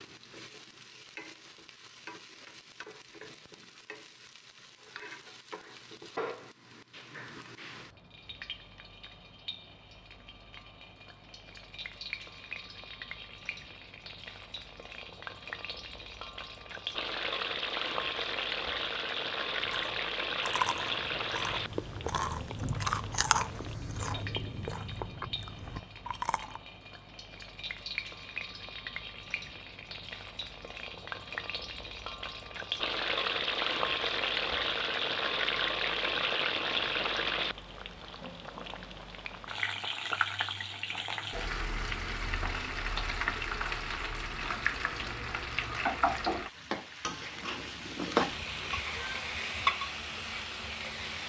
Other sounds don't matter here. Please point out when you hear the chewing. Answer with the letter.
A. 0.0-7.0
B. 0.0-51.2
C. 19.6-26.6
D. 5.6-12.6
C.